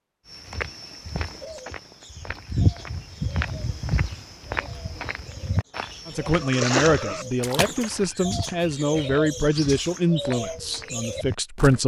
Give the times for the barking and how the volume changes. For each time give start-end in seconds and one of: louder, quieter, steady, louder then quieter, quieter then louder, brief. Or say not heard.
not heard.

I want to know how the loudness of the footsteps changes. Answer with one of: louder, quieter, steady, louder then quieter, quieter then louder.
quieter.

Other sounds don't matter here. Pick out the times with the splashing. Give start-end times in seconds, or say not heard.
6.3-10.2.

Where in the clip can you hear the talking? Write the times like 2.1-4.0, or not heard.
6.0-11.8.